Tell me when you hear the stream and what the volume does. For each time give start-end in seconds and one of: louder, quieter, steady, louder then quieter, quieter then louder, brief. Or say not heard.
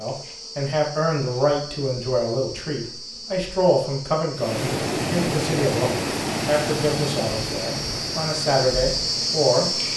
4.3-9.9 quieter.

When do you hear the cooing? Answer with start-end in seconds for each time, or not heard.
not heard.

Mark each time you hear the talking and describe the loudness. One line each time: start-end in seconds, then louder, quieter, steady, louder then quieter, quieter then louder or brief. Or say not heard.
0.0-9.7 steady.